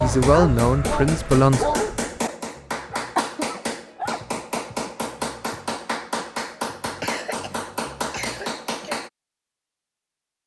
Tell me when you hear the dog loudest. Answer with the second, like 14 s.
2 s.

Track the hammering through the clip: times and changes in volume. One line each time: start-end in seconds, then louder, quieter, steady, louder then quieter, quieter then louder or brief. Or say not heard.
0.1-9.1 steady.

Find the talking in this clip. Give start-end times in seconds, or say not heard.
0.0-1.6.